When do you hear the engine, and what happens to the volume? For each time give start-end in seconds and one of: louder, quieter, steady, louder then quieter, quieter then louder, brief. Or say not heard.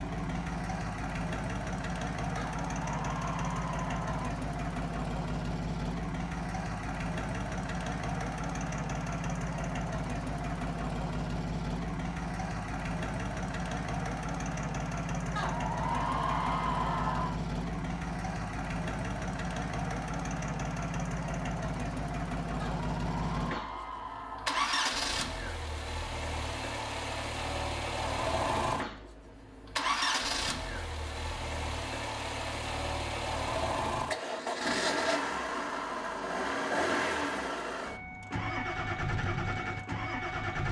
0.0-40.6 steady.